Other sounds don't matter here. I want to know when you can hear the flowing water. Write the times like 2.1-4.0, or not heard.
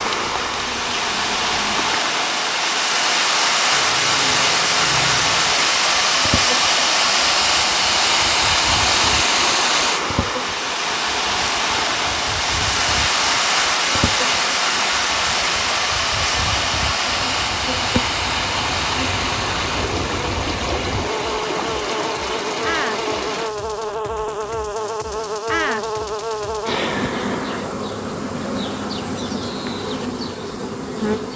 0.0-23.5.